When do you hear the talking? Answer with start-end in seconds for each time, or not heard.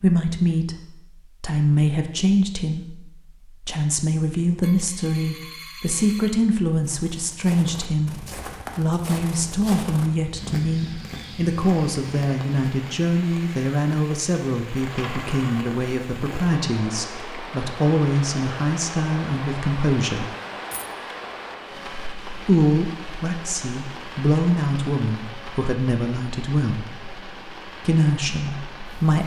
0.0-0.8, 1.4-20.3, 22.4-26.9, 27.8-29.2.